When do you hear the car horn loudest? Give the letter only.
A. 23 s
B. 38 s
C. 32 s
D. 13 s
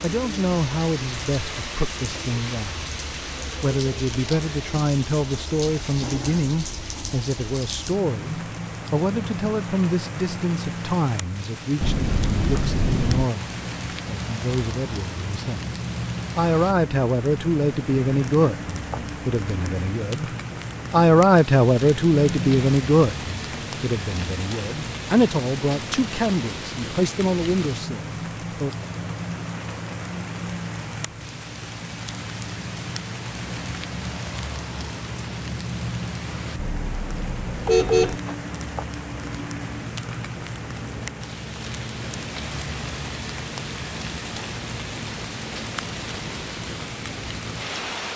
B.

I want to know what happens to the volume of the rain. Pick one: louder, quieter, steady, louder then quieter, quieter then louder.
steady.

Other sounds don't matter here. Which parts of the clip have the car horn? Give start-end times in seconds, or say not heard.
11.8-13.3, 22.2-22.6, 36.5-38.2.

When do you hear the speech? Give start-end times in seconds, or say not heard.
0.0-2.9, 3.6-15.7, 16.4-20.3, 20.9-28.8.